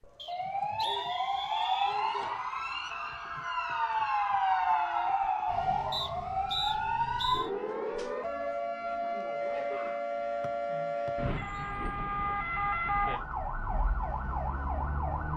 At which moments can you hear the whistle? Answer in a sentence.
You can hear the whistle from 0.1 to 2.0 s, from 5.9 to 7.5 s and from 10.4 to 11.7 s.